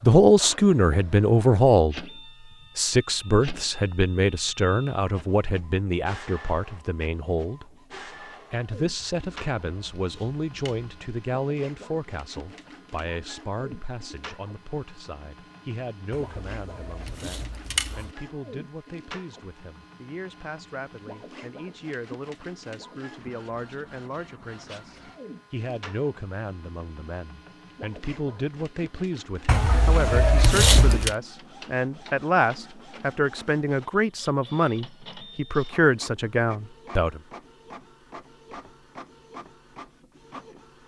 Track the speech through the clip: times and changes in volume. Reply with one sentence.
You can hear the speech briefly from 0.0 to 2.0 s; from 2.8 to 7.7 s, getting quieter; and from 8.5 to 37.2 s, getting quieter then louder.